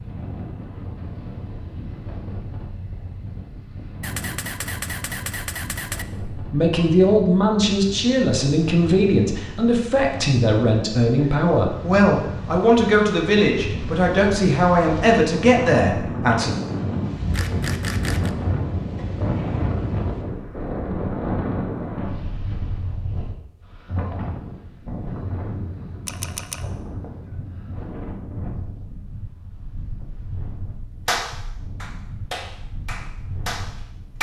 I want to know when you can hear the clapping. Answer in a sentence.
You can hear the clapping from 31.1 to 34.1 s.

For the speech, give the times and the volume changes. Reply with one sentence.
The speech can be heard from 6.3 to 16.6 s, at a steady volume.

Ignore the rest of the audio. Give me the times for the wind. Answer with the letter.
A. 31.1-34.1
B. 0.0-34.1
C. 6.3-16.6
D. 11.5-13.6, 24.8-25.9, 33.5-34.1
B.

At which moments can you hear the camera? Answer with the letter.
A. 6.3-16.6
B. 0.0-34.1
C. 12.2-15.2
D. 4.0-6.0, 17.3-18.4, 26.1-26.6
D.